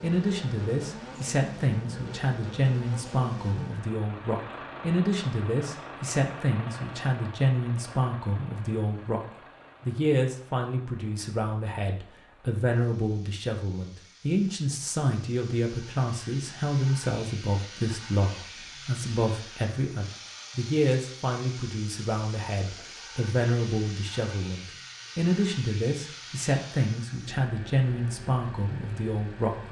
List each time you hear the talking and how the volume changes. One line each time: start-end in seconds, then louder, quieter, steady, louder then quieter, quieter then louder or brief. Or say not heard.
0.0-29.6 steady.